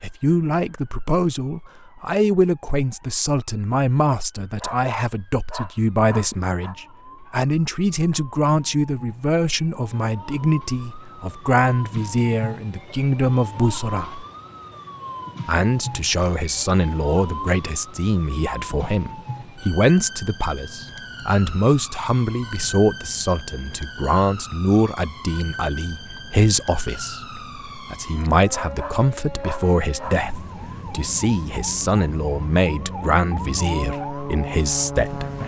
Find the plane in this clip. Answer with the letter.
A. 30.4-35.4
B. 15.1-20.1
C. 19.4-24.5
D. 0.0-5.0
A.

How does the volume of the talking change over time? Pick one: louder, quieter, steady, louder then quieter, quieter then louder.
steady.